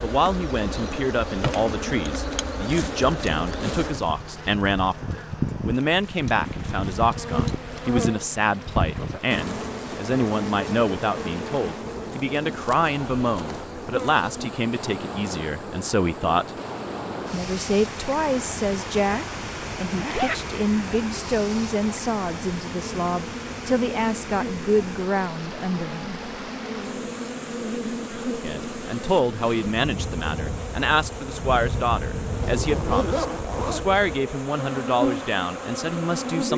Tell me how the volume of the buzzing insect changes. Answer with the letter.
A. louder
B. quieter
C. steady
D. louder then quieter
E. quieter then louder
E.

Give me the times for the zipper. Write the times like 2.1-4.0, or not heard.
2.6-4.0, 19.9-20.4, 32.4-33.9.